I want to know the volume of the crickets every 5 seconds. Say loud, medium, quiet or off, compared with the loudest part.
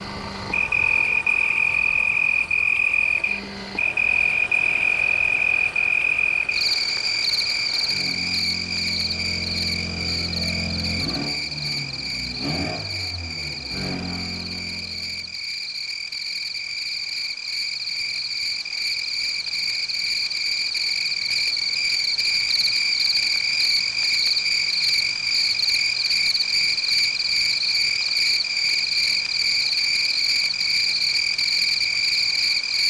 loud, loud, medium, medium, loud, loud, loud.